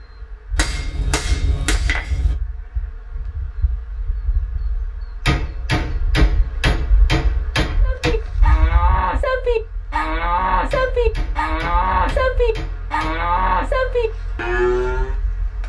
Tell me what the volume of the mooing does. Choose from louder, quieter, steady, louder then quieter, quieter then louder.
steady.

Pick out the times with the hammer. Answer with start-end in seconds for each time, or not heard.
0.6-2.4, 5.2-8.2, 10.7-13.3.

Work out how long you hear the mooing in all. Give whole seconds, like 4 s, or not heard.
7 s.